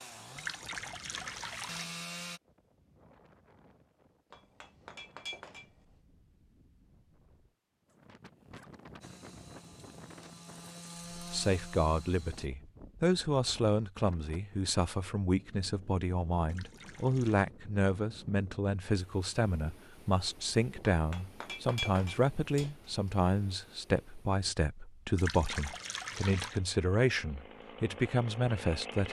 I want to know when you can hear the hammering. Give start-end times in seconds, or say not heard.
4.3-5.8, 20.9-22.9.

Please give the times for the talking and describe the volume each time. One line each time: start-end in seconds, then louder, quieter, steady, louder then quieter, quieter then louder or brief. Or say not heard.
11.2-29.0 steady.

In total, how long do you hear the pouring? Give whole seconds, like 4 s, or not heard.
4 s.